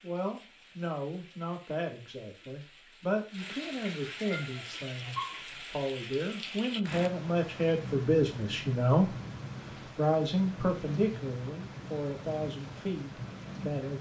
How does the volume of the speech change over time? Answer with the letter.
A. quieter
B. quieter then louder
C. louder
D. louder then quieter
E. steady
D.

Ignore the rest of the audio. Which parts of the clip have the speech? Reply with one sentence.
The speech can be heard from 0.0 to 9.2 s and from 9.9 to 13.9 s.